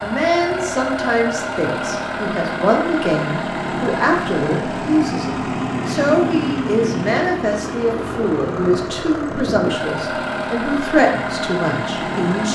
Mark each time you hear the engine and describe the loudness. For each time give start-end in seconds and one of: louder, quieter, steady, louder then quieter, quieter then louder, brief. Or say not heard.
0.0-12.5 steady.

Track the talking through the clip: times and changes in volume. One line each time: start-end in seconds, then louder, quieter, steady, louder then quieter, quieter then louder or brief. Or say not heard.
0.0-12.5 steady.